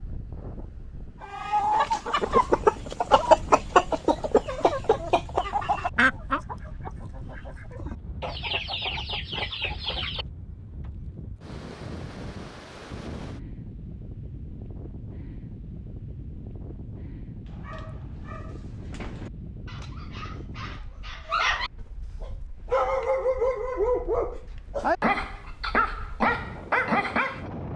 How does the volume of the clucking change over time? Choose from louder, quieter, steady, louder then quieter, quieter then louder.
quieter then louder.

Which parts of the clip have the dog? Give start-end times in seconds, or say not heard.
17.4-27.4.